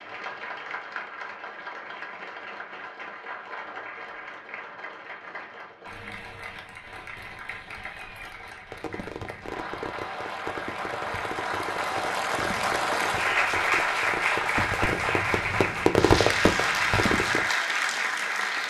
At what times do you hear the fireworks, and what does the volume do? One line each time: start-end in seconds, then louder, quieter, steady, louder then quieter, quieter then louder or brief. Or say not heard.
8.7-17.5 louder.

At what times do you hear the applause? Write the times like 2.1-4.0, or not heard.
0.0-18.6.